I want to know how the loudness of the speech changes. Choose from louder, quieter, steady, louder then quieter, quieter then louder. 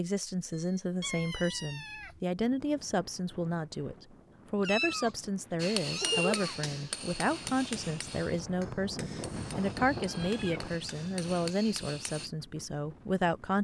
steady.